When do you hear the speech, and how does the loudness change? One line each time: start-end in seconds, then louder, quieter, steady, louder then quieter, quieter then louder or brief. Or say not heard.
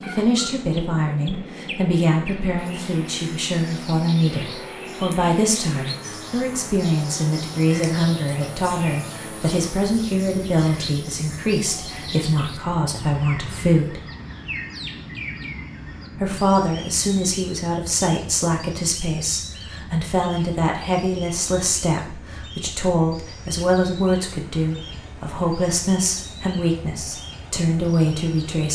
0.0-14.0 steady
16.1-28.7 steady.